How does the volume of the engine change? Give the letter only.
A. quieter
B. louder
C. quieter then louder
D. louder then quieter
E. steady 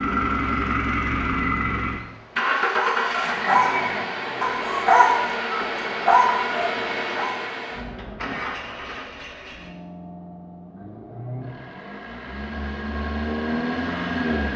C.